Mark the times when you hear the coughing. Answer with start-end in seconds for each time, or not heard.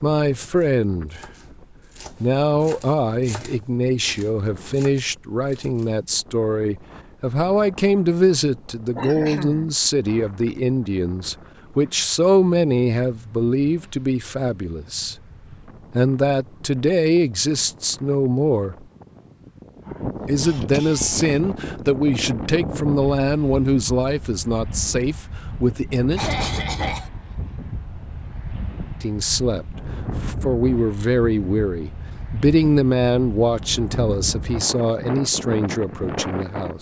8.9-9.7, 20.4-21.4, 26.1-27.1.